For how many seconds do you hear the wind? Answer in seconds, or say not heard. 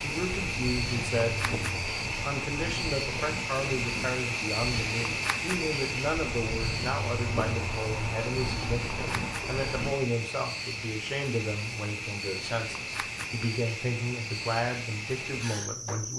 10 s.